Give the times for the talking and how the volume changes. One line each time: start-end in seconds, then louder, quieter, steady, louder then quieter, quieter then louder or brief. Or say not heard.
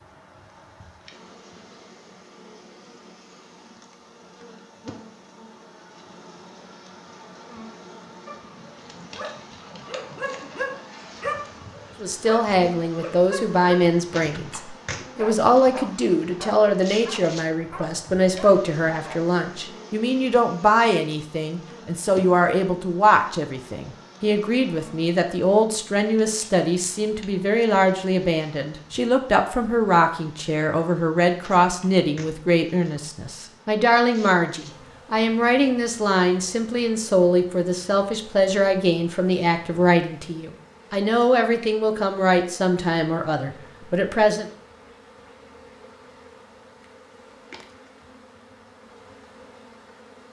12.0-44.5 steady.